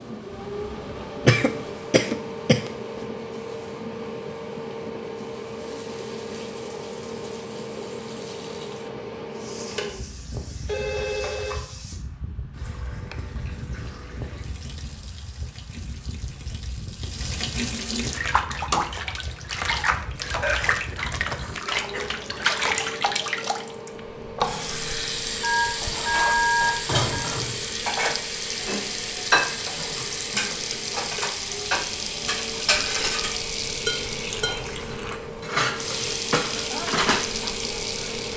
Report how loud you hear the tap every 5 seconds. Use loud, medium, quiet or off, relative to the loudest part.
quiet, quiet, quiet, loud, loud, loud, loud, loud.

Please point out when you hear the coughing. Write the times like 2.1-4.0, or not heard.
1.2-2.7, 20.4-22.1, 29.9-30.8.